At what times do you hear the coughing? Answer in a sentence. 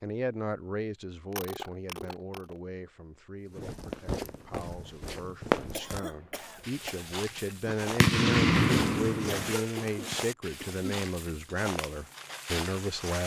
You can hear the coughing from 1.3 to 2.6 s, from 5.7 to 7.2 s and from 9.2 to 10.8 s.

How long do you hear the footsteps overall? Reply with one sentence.
The footsteps can be heard for 10 seconds in total.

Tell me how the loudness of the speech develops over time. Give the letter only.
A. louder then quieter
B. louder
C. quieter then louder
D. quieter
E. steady
C.